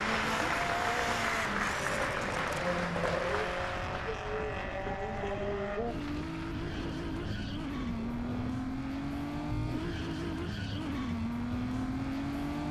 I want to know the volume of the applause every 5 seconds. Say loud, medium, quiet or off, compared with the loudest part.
loud, quiet, off.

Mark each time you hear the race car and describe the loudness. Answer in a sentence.
You can hear the race car from 0.0 to 12.6 s, at a steady volume.